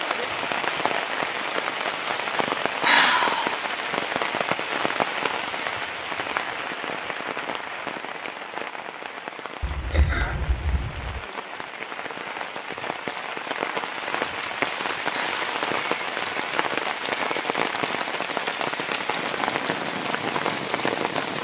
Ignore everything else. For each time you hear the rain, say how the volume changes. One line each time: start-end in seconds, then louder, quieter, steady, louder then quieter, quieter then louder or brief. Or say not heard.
0.0-21.4 quieter then louder.